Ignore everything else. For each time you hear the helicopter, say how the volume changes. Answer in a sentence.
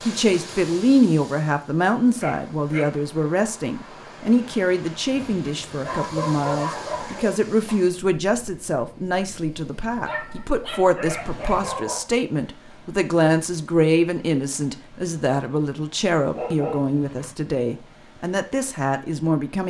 The helicopter can't be heard in this clip.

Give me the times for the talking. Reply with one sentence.
You can hear the talking from 0.1 to 19.6 s.